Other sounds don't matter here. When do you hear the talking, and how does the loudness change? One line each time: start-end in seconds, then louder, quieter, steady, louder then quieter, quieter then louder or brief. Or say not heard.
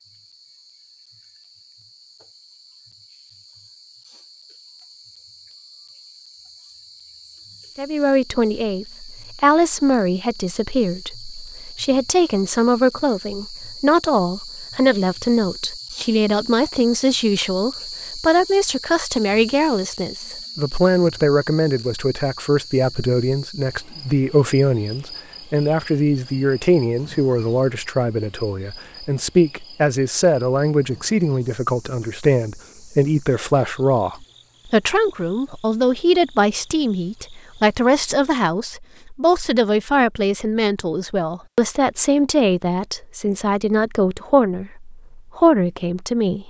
7.8-46.4 steady.